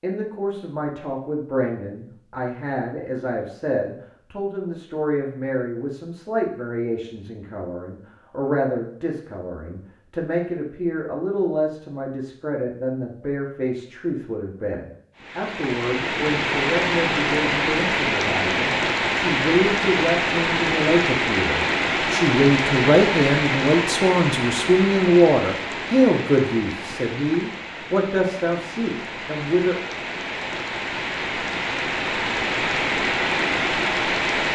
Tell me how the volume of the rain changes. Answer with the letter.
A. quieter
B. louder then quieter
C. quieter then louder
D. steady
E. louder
C.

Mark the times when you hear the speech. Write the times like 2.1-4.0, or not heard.
0.0-29.8.